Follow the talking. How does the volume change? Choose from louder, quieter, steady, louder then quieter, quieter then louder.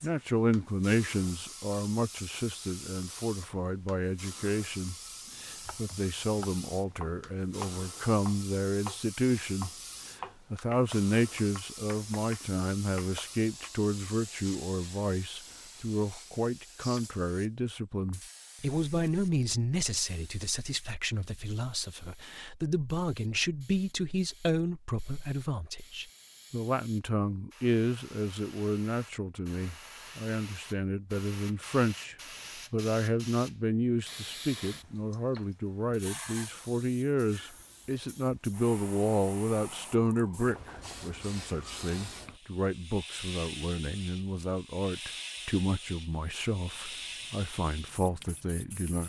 steady.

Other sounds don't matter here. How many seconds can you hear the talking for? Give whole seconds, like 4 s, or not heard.
49 s.